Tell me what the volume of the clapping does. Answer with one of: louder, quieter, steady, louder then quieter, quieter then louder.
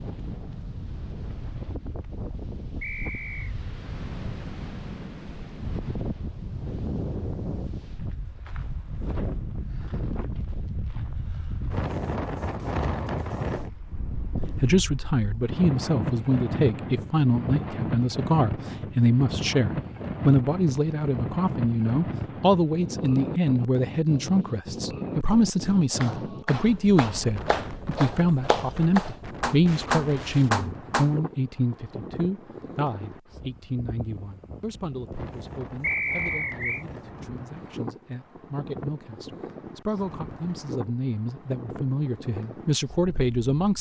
louder.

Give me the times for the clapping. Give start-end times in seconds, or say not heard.
25.9-31.1.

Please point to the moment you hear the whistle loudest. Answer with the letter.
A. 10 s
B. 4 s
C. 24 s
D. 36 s
D.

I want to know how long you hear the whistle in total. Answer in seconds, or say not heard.
2 s.